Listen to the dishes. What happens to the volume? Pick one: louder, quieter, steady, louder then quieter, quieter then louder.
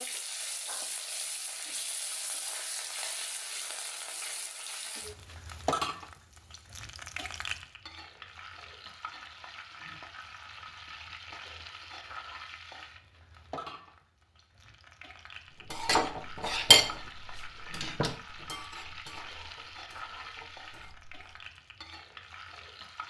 quieter.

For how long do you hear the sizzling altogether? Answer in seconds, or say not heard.
23 s.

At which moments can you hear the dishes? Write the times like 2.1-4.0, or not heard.
15.7-21.4.